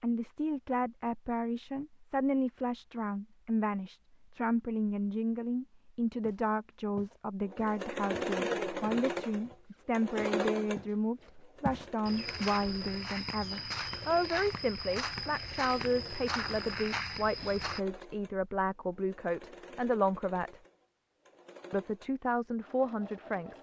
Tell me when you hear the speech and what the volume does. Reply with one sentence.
The speech can be heard from 0.0 to 20.6 s, at a steady volume; and briefly from 21.7 to 23.5 s.